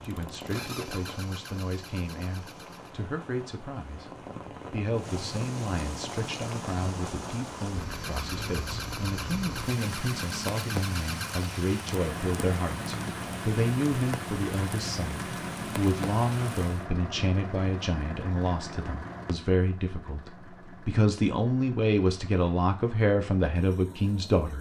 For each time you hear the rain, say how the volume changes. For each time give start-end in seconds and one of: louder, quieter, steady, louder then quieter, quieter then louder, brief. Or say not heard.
0.0-16.9 louder.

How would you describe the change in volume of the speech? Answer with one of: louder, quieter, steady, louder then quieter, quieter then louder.
louder.